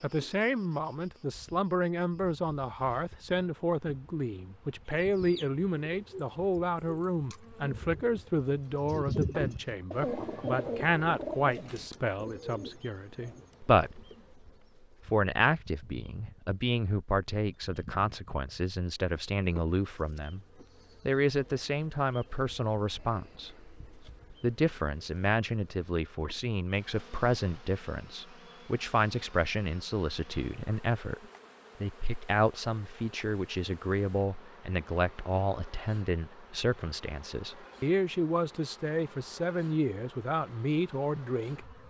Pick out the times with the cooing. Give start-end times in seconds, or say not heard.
4.8-13.5.